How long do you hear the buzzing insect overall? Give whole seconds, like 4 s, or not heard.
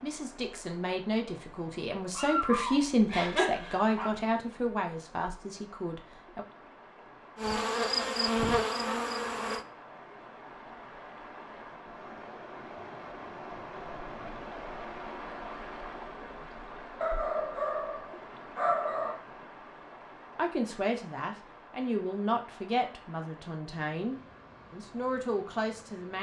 2 s.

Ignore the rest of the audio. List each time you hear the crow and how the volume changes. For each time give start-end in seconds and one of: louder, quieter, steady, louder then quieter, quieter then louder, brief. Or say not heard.
not heard.